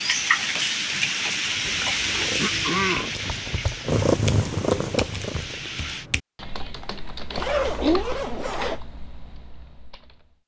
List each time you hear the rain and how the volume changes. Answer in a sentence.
The rain can be heard from 0.0 to 6.1 s, getting quieter.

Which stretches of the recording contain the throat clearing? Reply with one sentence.
You can hear the throat clearing from 2.4 to 3.1 s and from 7.3 to 8.1 s.